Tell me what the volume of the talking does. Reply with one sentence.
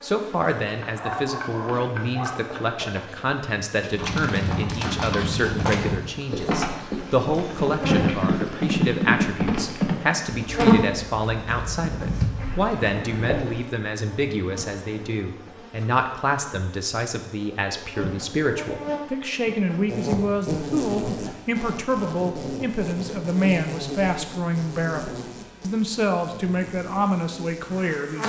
The loudness of the talking stays about the same.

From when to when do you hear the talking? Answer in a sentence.
You can hear the talking from 0.0 to 28.2 s.